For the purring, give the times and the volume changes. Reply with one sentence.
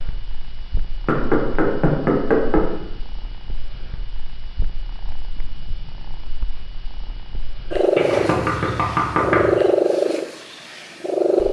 You can hear the purring from 0.0 to 11.4 s, getting louder.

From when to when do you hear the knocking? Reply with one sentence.
The knocking can be heard from 1.1 to 2.9 s and from 8.0 to 9.6 s.